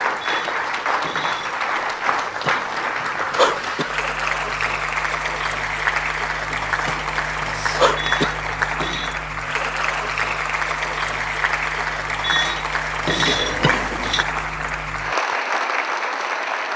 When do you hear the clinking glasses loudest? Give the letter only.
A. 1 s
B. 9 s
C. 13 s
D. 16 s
C.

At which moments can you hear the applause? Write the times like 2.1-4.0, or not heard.
0.0-16.7.